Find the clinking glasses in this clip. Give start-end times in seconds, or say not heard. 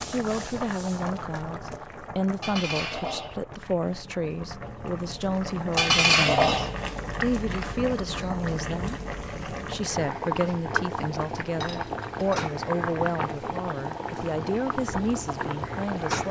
2.4-3.4, 5.8-6.8, 11.6-12.2.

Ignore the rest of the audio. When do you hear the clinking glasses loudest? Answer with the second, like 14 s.
6 s.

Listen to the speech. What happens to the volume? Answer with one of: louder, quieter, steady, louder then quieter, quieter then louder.
steady.